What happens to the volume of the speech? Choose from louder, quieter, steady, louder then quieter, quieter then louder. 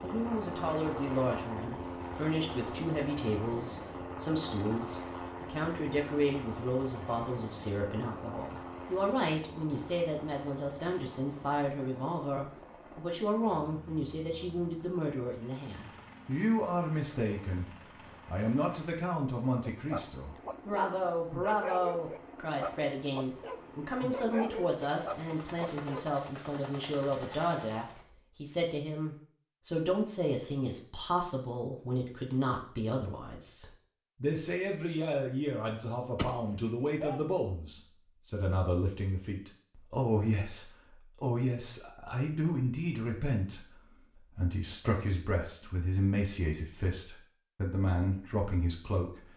steady.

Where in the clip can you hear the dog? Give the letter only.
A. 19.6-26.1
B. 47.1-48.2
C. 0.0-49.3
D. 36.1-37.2
A.